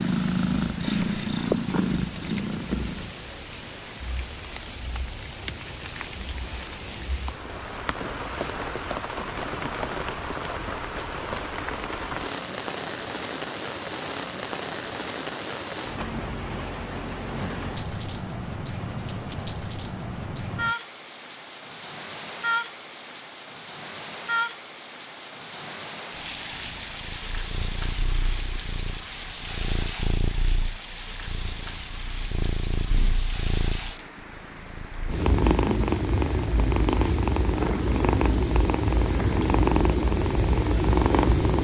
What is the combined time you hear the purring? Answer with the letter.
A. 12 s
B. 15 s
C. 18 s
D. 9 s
C.